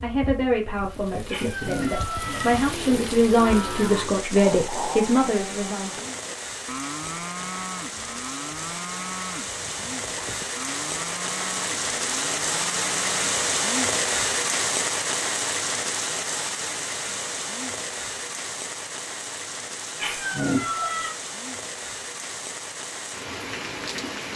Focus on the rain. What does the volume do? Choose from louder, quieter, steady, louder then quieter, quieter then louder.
louder then quieter.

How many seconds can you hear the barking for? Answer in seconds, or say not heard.
not heard.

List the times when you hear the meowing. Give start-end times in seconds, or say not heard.
1.3-2.8, 19.9-21.1.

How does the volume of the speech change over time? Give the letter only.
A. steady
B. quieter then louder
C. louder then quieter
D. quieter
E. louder
B.